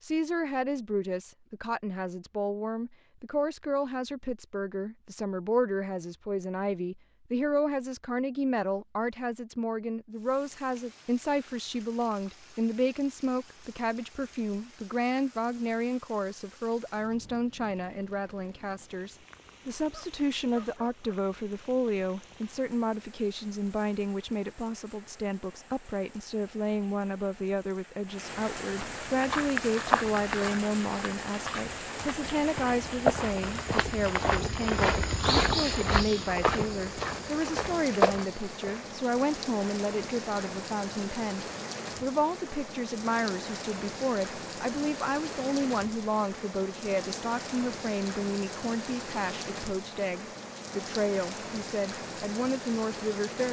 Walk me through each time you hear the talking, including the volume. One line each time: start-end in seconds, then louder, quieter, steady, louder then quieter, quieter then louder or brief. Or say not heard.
0.0-53.4 steady.